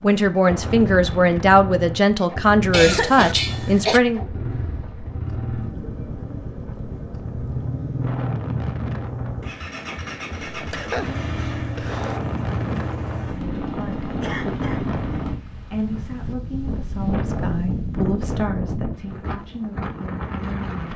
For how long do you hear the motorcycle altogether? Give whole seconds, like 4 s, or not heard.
15 s.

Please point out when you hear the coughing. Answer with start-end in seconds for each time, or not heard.
2.7-4.0, 10.5-12.2, 14.2-14.9.